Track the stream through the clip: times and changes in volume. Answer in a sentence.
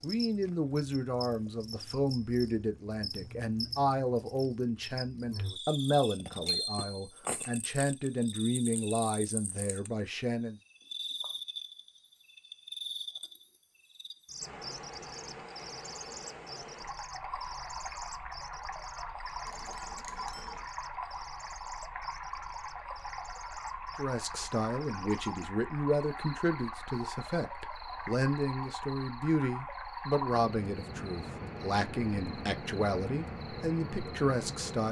The stream can be heard from 14.4 to 34.8 s, at a steady volume.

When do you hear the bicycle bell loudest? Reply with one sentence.
The loudest moment of the bicycle bell is at 7 seconds.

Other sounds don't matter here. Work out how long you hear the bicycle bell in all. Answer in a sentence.
The bicycle bell can be heard for 2 seconds in total.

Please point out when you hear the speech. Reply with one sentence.
The speech can be heard from 0.0 to 10.6 s and from 23.9 to 34.8 s.